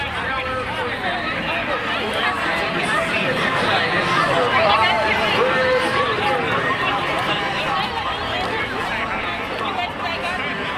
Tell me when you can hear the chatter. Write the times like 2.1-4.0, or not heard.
0.0-10.7.